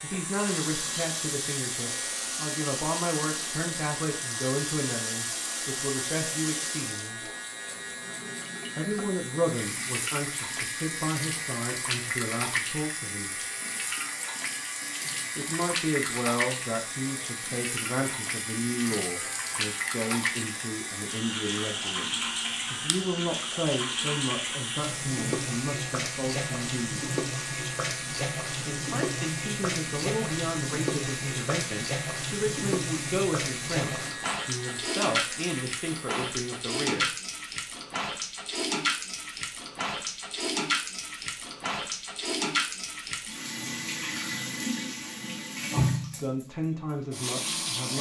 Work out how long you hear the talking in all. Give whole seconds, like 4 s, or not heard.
34 s.